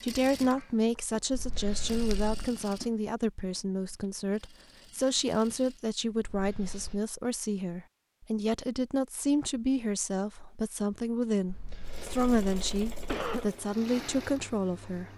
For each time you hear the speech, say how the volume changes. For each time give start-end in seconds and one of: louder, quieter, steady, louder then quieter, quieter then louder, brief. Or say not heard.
0.0-15.1 steady.